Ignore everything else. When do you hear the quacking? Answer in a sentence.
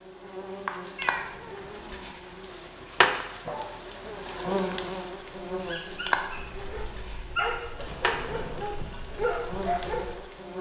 You can't hear the quacking here.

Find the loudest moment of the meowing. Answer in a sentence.
The volume of the meowing peaks at 1 second.